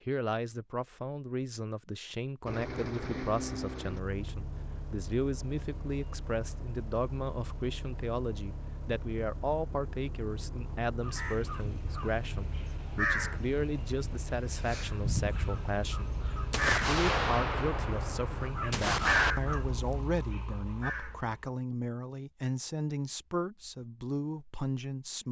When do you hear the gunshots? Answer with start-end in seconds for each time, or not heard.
16.5-19.4.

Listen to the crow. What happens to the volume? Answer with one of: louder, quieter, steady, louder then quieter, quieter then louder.
louder then quieter.